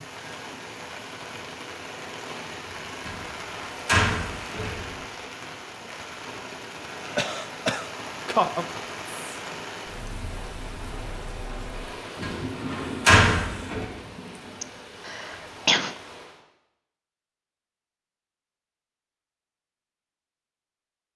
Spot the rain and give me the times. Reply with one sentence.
The rain can be heard from 0.0 to 16.4 s.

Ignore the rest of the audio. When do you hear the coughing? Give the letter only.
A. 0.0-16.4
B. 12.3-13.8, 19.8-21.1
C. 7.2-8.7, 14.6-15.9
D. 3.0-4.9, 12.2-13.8
C.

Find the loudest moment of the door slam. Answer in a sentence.
The loudest moment of the door slam is at 13 seconds.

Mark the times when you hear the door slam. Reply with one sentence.
The door slam can be heard from 3.0 to 4.9 s and from 12.2 to 13.8 s.